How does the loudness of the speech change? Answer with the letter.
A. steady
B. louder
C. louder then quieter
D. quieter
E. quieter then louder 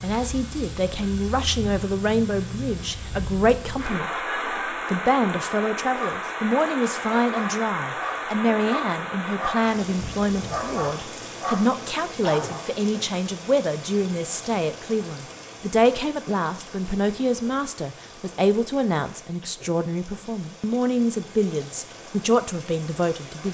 A.